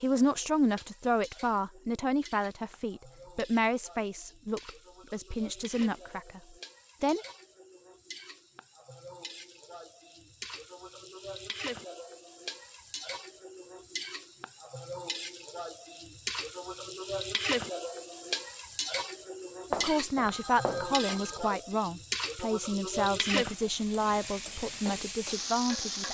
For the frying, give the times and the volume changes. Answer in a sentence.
You can hear the frying from 0.0 to 26.0 s, getting louder.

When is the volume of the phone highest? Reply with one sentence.
The volume of the phone peaks at 20 seconds.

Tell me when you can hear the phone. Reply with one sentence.
You can hear the phone from 19.7 to 21.4 s.